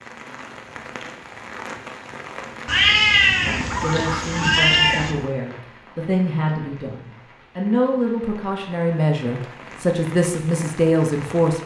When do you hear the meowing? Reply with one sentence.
You can hear the meowing from 2.6 to 5.2 s.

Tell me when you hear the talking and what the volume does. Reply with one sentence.
The talking can be heard from 3.8 to 11.6 s, getting louder.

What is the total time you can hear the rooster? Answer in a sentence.
You can hear the rooster for 2 seconds altogether.